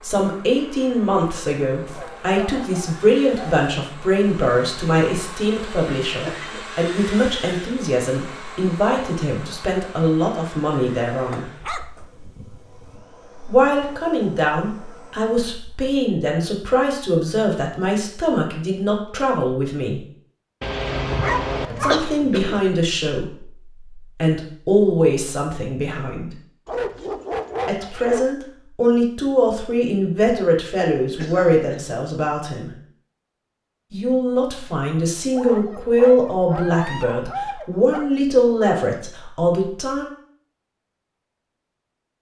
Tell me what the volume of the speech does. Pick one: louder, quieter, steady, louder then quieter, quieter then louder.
steady.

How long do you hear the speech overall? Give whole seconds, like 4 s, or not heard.
34 s.